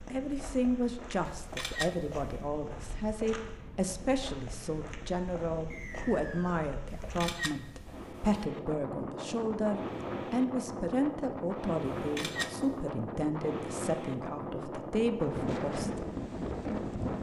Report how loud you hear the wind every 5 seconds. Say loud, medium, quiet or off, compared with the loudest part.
quiet, medium, loud, loud.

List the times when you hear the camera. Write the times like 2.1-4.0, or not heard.
1.4-2.3, 6.8-8.4, 11.8-12.8.